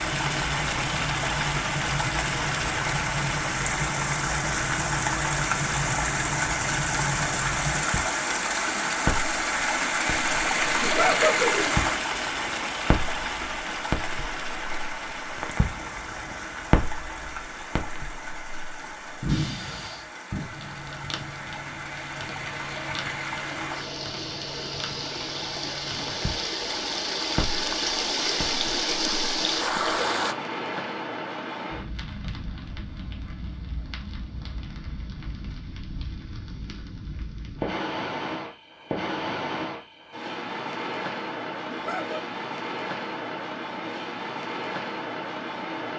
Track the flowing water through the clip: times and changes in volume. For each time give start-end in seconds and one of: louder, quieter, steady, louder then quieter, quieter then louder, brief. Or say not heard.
0.0-30.4 quieter then louder.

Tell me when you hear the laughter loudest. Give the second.
11 s.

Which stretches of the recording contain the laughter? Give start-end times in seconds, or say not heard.
10.8-11.7, 41.6-42.2.